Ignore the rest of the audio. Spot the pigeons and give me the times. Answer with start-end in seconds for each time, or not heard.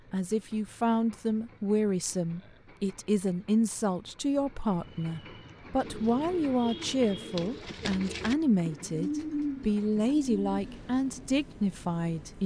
5.8-11.3.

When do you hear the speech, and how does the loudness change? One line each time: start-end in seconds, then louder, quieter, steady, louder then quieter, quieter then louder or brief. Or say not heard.
0.1-12.4 steady.